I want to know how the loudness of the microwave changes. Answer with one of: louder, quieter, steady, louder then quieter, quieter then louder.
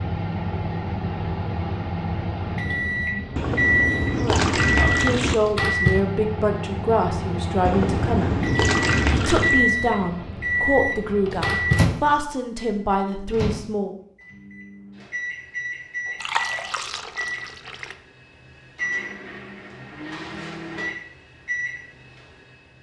quieter.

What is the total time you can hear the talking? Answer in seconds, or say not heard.
9 s.